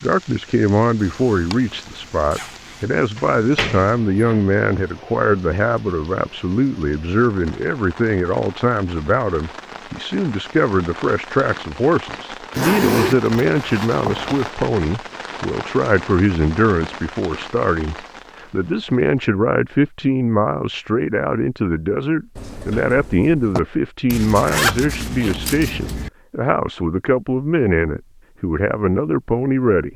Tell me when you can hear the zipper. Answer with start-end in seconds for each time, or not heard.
1.0-2.9, 12.5-14.3, 24.1-26.1.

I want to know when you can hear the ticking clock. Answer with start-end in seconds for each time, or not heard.
not heard.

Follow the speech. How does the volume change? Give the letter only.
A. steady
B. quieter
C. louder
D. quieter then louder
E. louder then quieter
A.